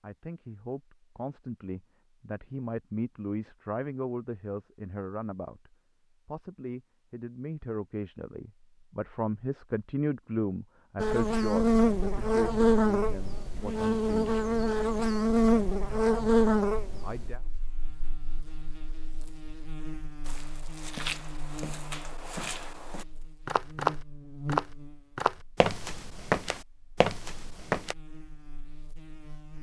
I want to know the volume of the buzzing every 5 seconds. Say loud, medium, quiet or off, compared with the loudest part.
off, off, loud, loud, quiet, quiet.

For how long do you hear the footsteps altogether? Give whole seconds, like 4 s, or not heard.
8 s.